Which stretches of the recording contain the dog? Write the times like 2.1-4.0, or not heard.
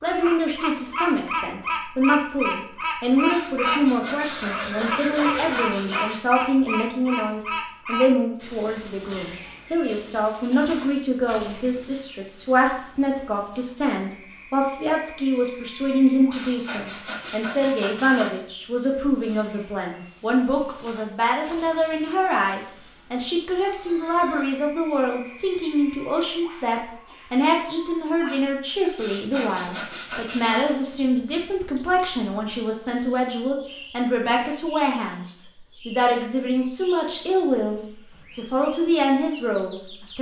not heard.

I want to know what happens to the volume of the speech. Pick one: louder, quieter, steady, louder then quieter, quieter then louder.
steady.